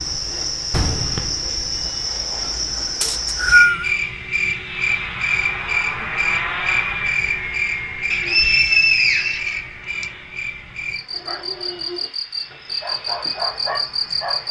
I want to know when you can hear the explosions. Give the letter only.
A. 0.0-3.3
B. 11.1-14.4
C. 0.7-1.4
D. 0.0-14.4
C.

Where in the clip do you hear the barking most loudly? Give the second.
14 s.